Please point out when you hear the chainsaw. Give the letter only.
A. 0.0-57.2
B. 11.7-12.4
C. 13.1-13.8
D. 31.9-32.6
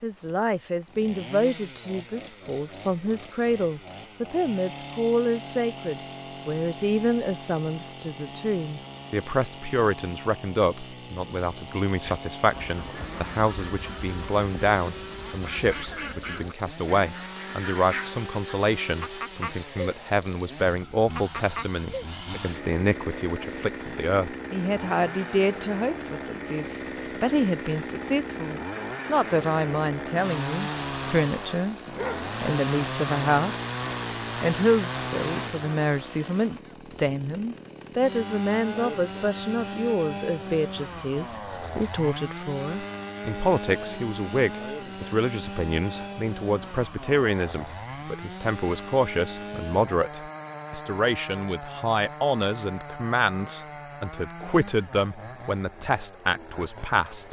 A.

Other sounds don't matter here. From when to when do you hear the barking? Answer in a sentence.
You can hear the barking from 31.9 to 32.6 s.